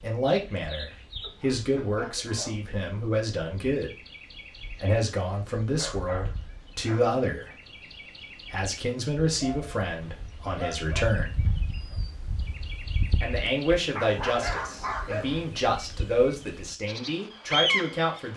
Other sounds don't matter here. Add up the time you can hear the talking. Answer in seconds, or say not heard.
15 s.